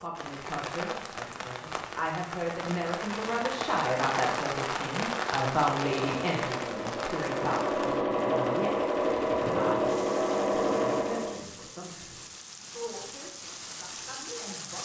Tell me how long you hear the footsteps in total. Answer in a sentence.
The footsteps can't be heard in this clip.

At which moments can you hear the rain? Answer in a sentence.
The rain can be heard from 0.0 to 14.7 s.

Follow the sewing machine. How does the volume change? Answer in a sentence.
The loudness of the sewing machine goes up.